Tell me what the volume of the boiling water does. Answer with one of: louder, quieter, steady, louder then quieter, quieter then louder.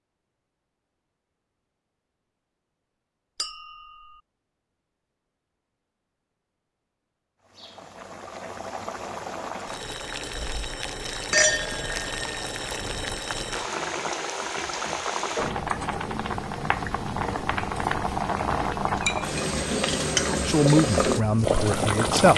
louder.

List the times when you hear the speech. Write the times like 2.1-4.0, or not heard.
20.2-22.3.